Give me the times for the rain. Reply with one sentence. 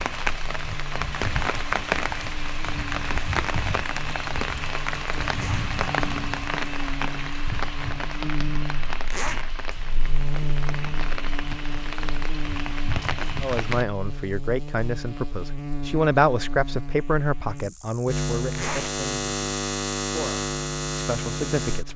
You can hear the rain from 0.0 to 13.8 s.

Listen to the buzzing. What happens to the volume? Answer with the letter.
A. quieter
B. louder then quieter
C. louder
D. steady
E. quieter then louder
C.